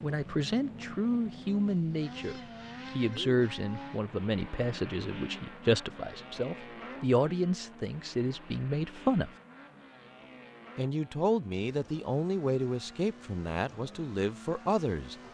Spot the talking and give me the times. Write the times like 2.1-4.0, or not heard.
0.0-9.3, 10.8-15.2.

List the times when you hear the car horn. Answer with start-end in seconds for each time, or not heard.
not heard.